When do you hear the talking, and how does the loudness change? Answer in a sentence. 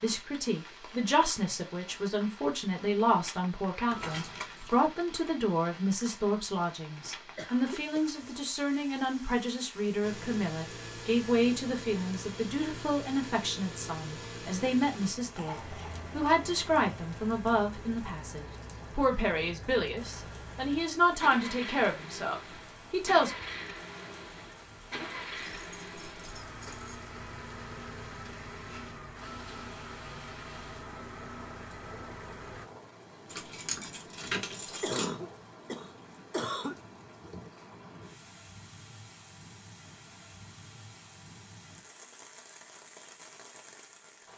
The talking can be heard from 0.0 to 23.3 s, at a steady volume.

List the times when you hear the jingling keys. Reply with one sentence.
You can hear the jingling keys from 3.9 to 4.8 s, from 25.4 to 26.9 s and from 33.2 to 35.2 s.